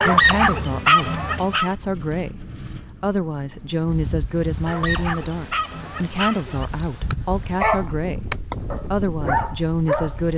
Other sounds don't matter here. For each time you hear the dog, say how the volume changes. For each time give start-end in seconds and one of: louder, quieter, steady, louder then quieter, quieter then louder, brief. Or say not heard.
0.0-1.7 brief
4.7-10.2 louder.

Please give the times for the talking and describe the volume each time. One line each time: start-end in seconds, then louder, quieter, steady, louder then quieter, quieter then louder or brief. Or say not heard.
0.0-10.3 steady.